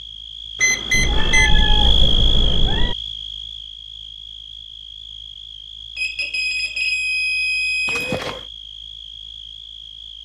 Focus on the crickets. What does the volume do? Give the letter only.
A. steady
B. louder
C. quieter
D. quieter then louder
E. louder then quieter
C.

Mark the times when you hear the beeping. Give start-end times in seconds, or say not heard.
0.6-1.6, 6.0-8.2.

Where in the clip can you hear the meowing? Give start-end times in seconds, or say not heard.
0.9-3.0, 7.8-8.4.